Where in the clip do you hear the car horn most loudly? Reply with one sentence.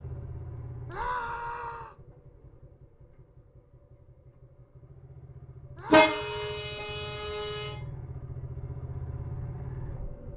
The loudest moment of the car horn is at 6 seconds.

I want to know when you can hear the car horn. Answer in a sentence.
The car horn can be heard from 5.9 to 7.8 s.